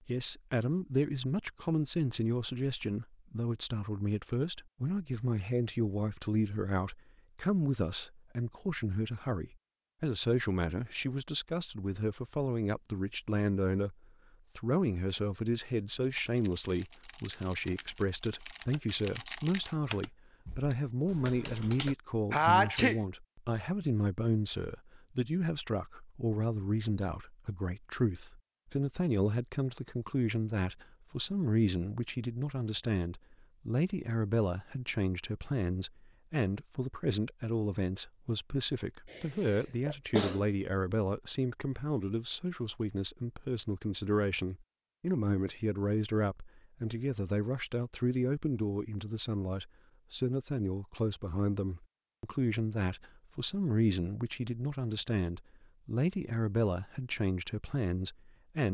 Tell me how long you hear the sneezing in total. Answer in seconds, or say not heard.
2 s.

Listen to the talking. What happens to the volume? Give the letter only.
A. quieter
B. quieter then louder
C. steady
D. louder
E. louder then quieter
C.